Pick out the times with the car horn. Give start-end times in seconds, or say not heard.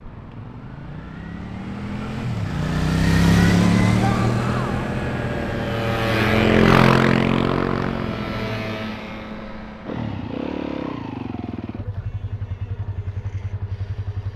not heard.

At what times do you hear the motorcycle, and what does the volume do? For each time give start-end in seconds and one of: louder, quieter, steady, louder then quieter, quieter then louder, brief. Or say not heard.
0.0-14.3 louder then quieter.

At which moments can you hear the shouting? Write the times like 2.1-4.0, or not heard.
4.0-4.9.